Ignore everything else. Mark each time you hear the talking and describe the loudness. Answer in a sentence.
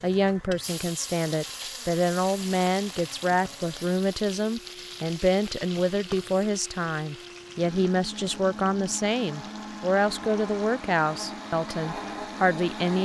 The talking can be heard from 0.0 to 13.0 s, at a steady volume.